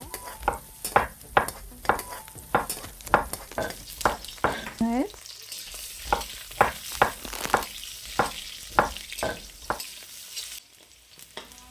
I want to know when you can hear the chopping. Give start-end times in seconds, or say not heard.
0.4-5.2, 6.0-9.8.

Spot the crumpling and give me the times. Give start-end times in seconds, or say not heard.
2.8-3.7, 6.9-7.7.